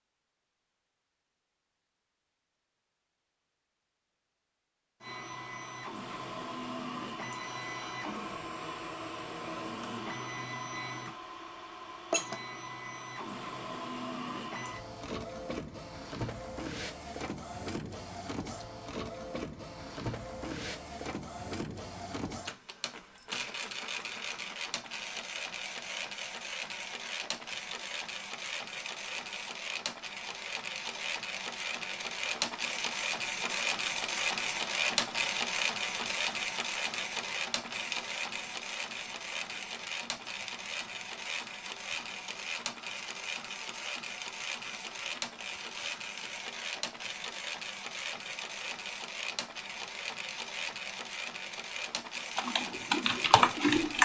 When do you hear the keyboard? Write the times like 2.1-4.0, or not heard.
52.4-54.0.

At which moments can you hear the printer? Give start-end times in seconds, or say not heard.
5.0-54.0.